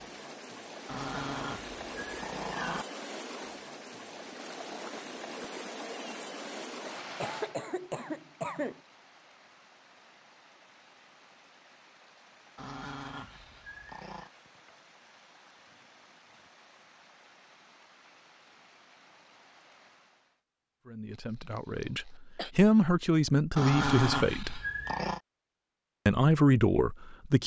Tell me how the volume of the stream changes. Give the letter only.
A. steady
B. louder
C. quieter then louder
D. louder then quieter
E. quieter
E.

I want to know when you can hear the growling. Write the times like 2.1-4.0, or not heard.
0.8-2.9, 12.6-14.3, 23.6-25.2.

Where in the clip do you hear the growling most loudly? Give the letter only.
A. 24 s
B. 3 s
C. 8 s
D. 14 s
A.